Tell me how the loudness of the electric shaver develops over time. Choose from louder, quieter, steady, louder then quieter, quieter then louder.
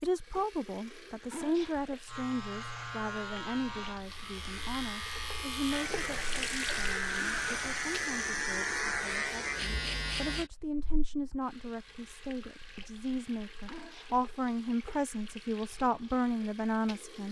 louder.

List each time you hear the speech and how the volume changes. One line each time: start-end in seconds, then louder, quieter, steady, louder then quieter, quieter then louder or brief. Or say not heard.
0.0-17.2 quieter then louder.